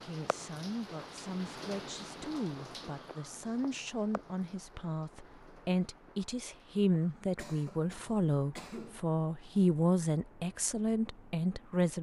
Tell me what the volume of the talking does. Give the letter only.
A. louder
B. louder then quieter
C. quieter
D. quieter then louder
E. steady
A.